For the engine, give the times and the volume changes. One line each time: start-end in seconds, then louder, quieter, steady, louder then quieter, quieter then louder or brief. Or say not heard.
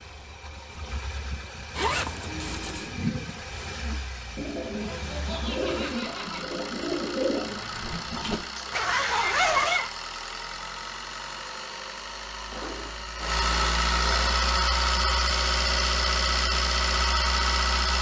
0.0-17.9 louder.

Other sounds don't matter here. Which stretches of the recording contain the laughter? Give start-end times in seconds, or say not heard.
5.0-6.5.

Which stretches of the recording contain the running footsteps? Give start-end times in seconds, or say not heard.
not heard.